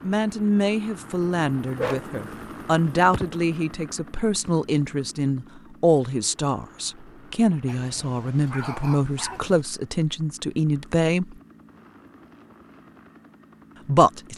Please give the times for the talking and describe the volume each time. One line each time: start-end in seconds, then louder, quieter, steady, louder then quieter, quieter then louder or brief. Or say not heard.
0.0-11.3 steady
13.8-14.3 brief.